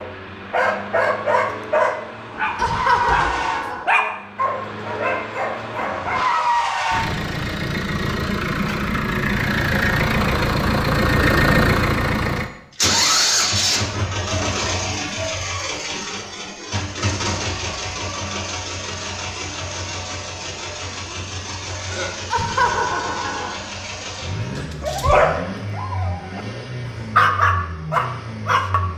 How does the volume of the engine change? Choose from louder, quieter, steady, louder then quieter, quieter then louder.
louder then quieter.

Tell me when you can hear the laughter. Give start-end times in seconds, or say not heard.
2.5-3.9, 22.3-23.6.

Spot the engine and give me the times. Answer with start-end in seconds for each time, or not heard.
0.0-28.9.